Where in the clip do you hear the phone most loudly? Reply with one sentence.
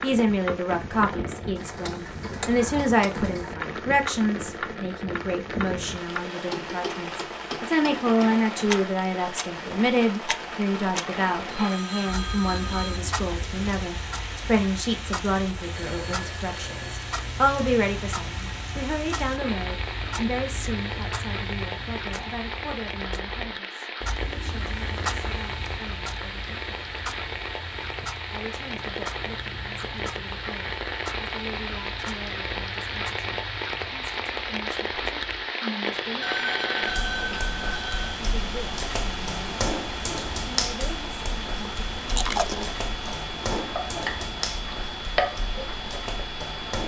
The loudest moment of the phone is at 37 seconds.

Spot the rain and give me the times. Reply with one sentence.
You can hear the rain from 0.0 to 46.8 s.